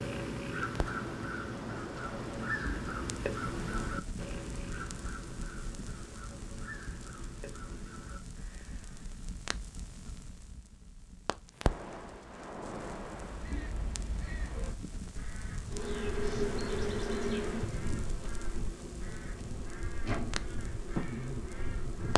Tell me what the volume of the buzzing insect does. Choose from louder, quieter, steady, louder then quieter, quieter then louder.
quieter then louder.